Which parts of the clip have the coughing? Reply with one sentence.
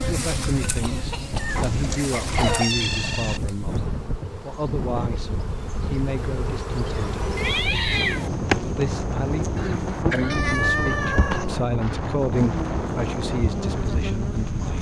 The coughing can be heard from 0.8 to 2.7 s and from 9.6 to 10.4 s.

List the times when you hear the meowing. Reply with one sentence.
The meowing can be heard from 1.4 to 3.4 s, from 7.3 to 8.3 s and from 10.3 to 11.7 s.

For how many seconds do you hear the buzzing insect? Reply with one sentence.
You can hear the buzzing insect for 15 seconds altogether.